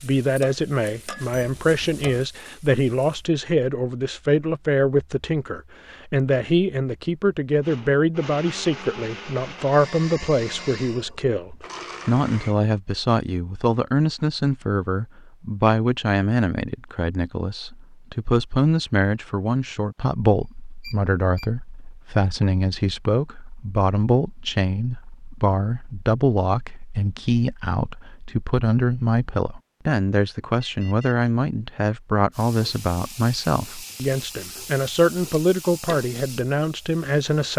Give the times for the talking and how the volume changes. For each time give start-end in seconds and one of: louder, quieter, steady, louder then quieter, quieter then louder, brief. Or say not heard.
0.0-37.5 steady.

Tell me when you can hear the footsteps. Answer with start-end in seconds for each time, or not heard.
not heard.